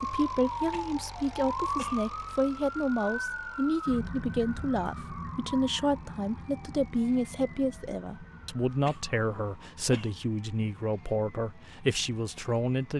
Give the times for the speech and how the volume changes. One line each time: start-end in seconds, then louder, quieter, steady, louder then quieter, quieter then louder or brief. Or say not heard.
0.0-12.9 steady.